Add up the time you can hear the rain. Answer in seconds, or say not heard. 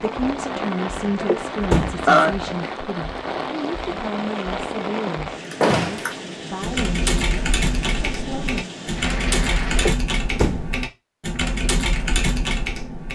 10 s.